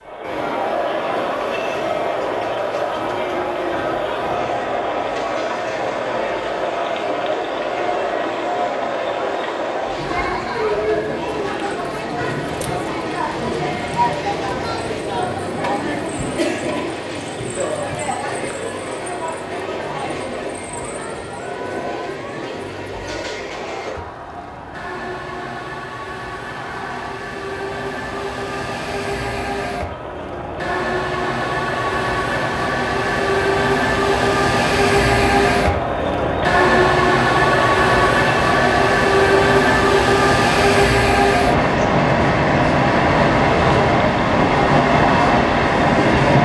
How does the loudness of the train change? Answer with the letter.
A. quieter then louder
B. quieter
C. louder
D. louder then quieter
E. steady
C.